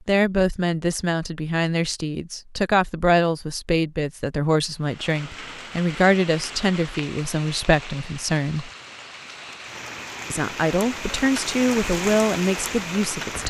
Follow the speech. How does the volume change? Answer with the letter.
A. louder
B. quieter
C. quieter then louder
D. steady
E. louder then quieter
D.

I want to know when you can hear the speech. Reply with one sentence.
The speech can be heard from 0.1 to 8.7 s and from 10.3 to 13.4 s.